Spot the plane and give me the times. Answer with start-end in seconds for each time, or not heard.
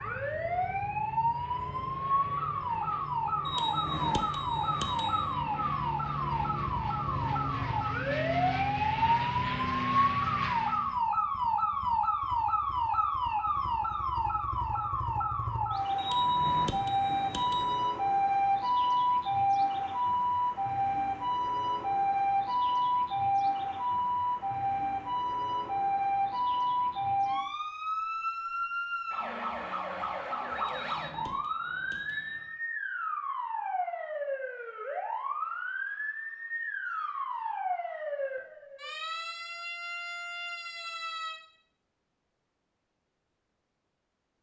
0.0-10.9.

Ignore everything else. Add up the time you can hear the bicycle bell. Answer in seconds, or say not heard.
6 s.